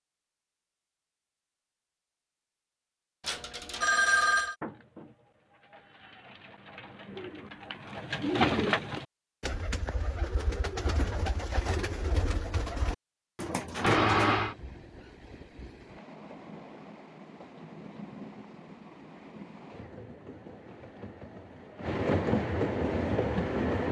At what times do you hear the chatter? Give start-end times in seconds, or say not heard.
not heard.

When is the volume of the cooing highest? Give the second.
9 s.